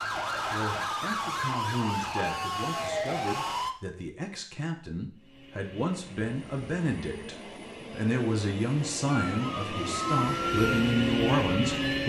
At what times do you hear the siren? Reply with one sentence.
The siren can be heard from 0.0 to 3.8 s and from 9.1 to 12.0 s.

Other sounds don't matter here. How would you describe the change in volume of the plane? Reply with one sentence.
The volume of the plane goes up.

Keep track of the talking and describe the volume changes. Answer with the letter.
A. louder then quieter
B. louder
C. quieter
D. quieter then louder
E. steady
B.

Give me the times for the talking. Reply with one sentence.
You can hear the talking from 0.5 to 12.0 s.